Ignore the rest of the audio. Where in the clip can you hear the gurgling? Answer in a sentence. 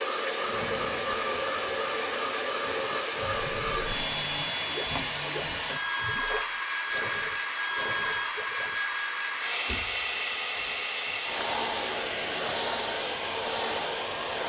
You can hear the gurgling from 2.8 to 8.8 s.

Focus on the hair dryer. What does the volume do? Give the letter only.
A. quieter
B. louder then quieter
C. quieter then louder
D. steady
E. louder
D.